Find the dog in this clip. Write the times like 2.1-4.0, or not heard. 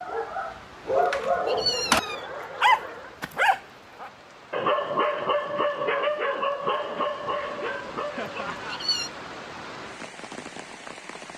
0.0-8.8.